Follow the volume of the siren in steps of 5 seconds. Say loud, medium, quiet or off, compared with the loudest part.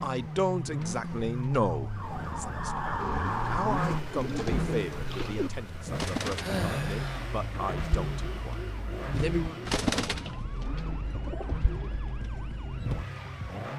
loud, loud, medium.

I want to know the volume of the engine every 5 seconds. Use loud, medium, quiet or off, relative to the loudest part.
loud, loud, medium.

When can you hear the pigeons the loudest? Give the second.
10 s.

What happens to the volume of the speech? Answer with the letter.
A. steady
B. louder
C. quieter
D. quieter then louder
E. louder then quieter
C.